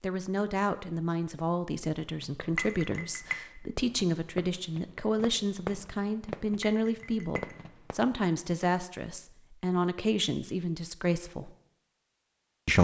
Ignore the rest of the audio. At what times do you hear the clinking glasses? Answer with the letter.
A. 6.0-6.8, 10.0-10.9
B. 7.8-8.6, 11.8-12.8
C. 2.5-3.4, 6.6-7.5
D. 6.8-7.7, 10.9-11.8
C.